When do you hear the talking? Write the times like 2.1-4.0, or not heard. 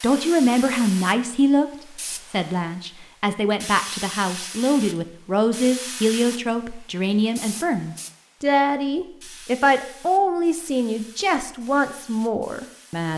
0.0-13.1.